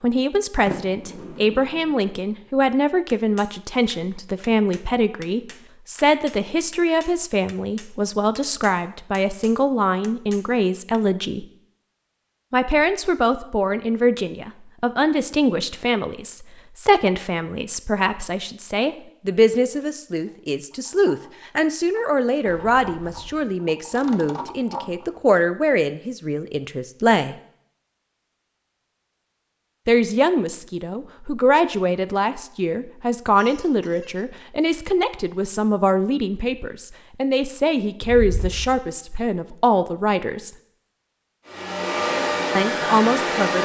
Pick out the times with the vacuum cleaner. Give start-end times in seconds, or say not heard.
41.5-43.5.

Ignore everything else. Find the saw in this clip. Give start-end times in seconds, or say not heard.
not heard.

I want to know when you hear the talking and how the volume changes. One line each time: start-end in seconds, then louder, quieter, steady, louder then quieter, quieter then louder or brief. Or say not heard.
0.0-11.4 steady
12.5-27.4 steady
29.9-40.5 steady
42.5-43.5 brief.